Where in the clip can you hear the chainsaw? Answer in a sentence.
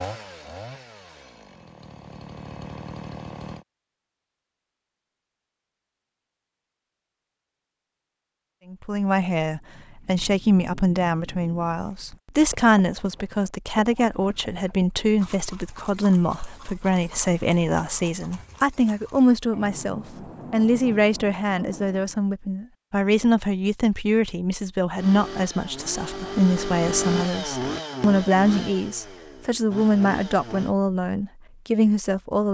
The chainsaw can be heard from 0.0 to 3.6 s and from 24.9 to 30.8 s.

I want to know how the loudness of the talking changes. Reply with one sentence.
The loudness of the talking stays about the same.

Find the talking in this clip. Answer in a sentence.
The talking can be heard from 8.7 to 32.4 s.